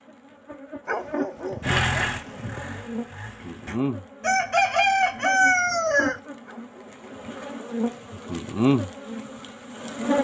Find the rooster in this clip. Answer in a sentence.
The rooster can be heard from 4.2 to 6.2 s.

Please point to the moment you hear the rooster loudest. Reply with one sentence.
The loudest moment of the rooster is at 5 seconds.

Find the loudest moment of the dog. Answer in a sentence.
The loudest moment of the dog is at 1 second.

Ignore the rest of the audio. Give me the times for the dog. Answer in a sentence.
You can hear the dog from 0.8 to 2.6 s and from 6.5 to 8.4 s.